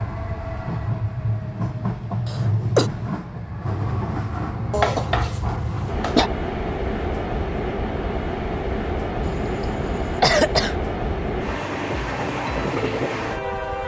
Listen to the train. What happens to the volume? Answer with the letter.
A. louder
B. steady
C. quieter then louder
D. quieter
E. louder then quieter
B.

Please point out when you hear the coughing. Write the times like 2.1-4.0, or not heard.
2.2-2.9, 4.7-6.3, 9.2-10.8.